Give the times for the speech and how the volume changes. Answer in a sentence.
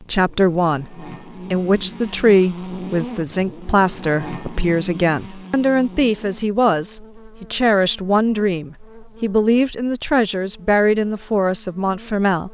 You can hear the speech from 0.0 to 12.4 s, at a steady volume.